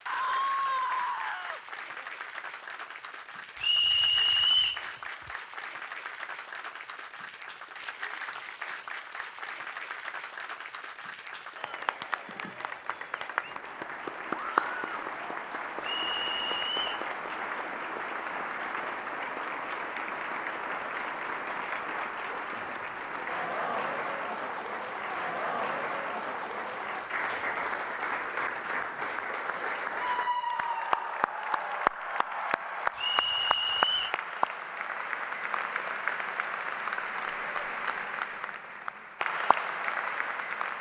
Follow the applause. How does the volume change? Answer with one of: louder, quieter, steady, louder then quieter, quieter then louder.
louder.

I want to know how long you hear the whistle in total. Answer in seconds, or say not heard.
4 s.